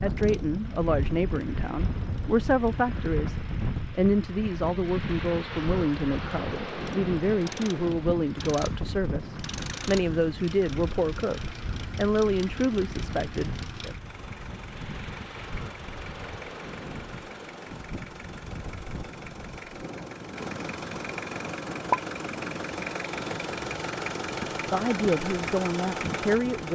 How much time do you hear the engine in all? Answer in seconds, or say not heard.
27 s.